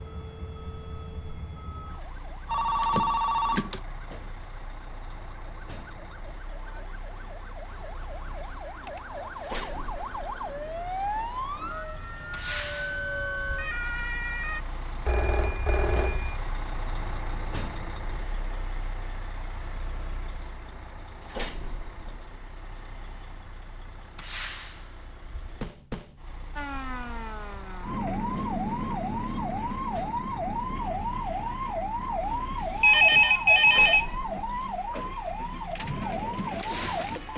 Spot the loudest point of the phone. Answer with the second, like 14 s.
33 s.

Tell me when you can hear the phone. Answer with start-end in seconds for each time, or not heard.
2.5-3.8, 15.1-16.4, 32.8-34.1.